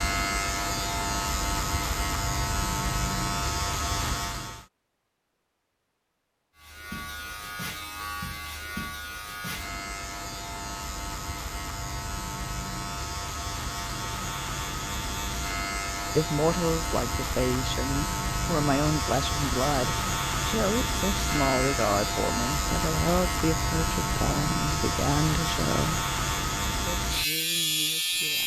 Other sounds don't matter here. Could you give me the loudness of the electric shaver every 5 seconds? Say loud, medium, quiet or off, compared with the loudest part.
loud, medium, medium, loud, loud, loud.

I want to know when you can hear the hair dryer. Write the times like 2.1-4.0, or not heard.
not heard.